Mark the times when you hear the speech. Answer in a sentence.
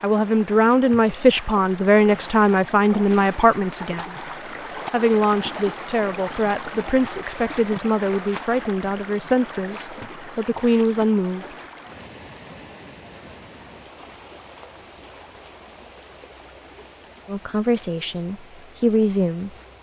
The speech can be heard from 0.0 to 4.2 s, from 4.9 to 11.6 s and from 17.2 to 19.5 s.